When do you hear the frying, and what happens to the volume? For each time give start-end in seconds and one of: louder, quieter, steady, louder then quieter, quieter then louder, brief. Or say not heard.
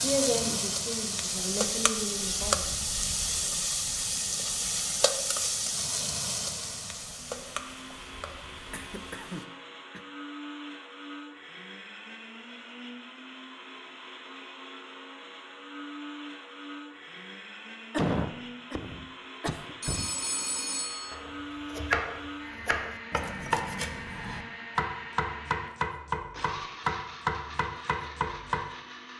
0.0-9.4 quieter.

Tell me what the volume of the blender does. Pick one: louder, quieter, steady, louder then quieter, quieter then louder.
steady.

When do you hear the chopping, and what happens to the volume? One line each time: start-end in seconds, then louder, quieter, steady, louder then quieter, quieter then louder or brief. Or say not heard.
21.1-28.6 steady.